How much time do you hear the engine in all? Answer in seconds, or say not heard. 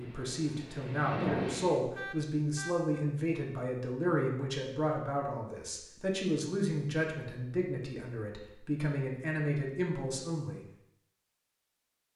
2 s.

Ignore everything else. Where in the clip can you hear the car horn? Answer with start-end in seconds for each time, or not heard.
1.9-3.0.